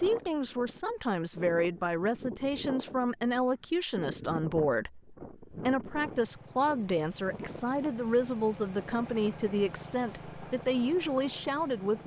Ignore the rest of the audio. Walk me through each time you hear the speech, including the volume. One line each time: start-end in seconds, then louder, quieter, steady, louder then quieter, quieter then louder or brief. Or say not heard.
0.0-12.0 steady.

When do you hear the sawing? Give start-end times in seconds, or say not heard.
not heard.